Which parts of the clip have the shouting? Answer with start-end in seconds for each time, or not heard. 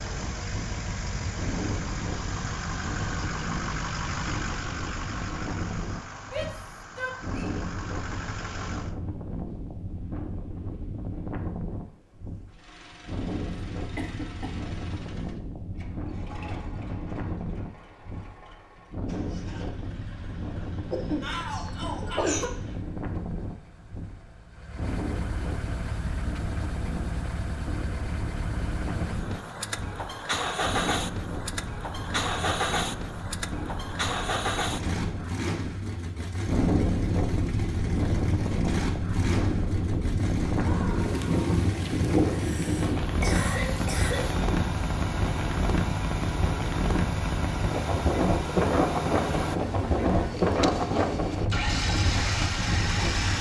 6.3-7.6, 21.2-22.2, 40.5-41.7.